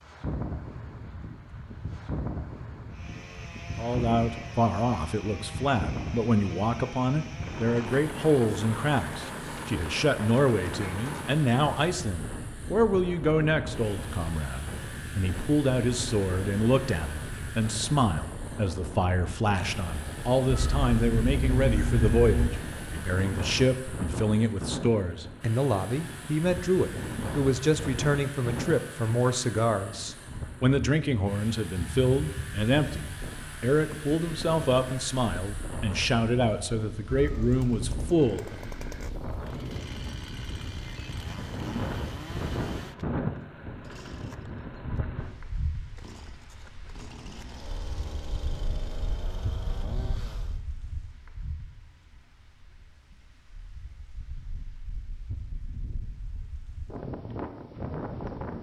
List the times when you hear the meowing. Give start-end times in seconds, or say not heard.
20.4-22.5, 37.0-38.1.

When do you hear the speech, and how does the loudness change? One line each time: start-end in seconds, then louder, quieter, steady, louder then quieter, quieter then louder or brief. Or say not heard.
3.8-38.7 steady.